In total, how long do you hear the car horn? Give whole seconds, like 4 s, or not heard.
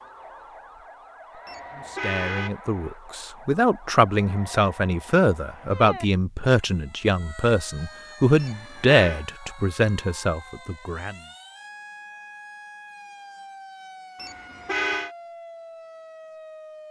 3 s.